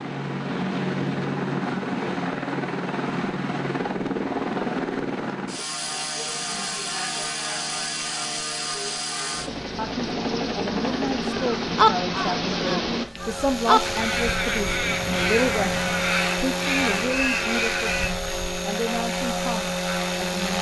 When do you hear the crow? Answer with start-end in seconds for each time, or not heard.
10.8-18.1.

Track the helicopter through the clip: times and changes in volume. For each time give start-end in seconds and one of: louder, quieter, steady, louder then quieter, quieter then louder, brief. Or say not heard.
0.0-20.5 steady.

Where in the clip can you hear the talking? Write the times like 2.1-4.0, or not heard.
9.8-20.5.